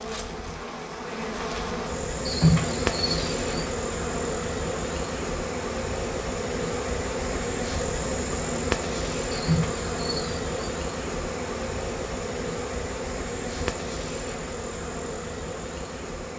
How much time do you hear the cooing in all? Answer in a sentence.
The cooing can be heard for 3 seconds in total.